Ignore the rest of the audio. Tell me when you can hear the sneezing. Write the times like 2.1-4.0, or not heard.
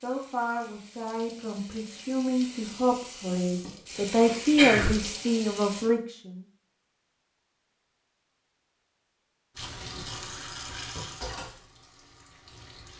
3.6-5.1.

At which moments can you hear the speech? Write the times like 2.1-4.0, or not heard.
0.0-6.4.